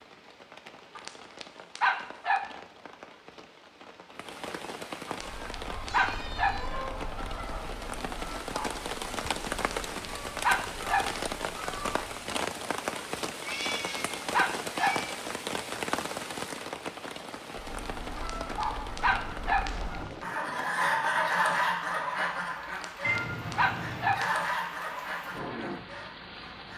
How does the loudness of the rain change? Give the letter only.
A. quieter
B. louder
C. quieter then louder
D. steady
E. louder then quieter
E.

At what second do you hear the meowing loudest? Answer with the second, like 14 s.
23 s.